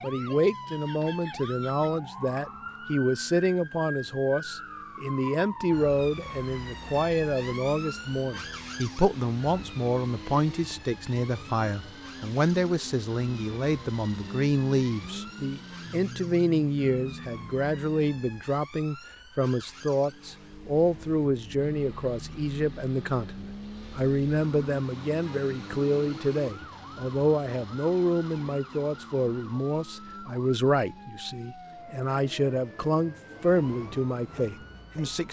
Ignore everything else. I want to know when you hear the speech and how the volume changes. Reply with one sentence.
The speech can be heard from 0.0 to 35.2 s, at a steady volume.